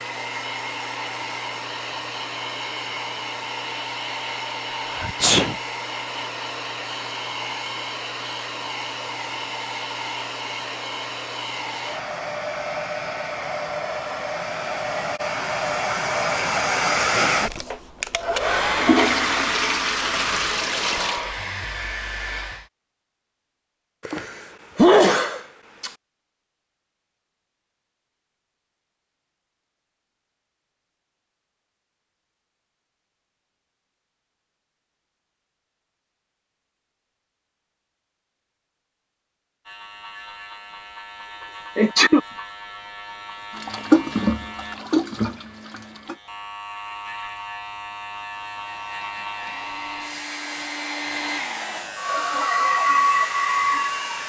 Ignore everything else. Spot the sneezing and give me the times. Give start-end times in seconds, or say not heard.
4.8-5.5, 24.1-25.9, 41.8-42.2.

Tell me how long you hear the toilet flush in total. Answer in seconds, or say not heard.
5 s.